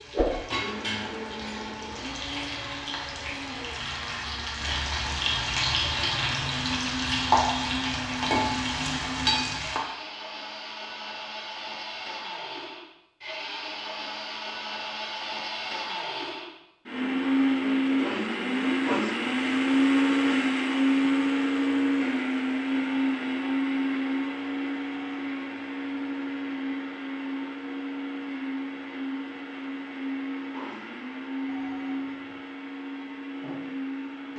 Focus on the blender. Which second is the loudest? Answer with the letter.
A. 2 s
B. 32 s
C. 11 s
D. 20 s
D.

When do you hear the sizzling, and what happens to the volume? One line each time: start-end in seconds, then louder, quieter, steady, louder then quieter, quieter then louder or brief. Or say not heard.
0.0-9.8 louder.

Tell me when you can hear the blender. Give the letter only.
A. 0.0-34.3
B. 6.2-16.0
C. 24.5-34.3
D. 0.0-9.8
A.